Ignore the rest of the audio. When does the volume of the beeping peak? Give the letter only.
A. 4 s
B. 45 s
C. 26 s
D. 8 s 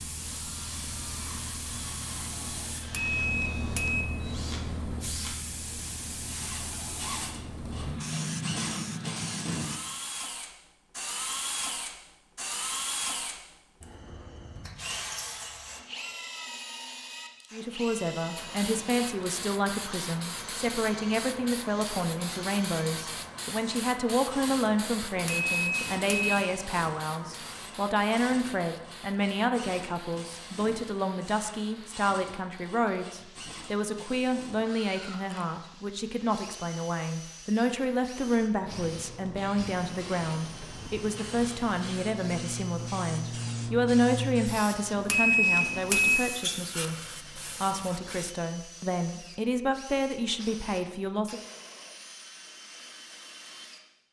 B.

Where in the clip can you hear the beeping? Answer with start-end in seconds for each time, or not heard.
2.8-4.0, 25.1-26.4, 45.0-46.2.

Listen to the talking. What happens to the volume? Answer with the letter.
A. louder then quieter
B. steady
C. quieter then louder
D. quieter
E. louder
B.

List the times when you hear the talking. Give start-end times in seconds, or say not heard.
17.5-51.4.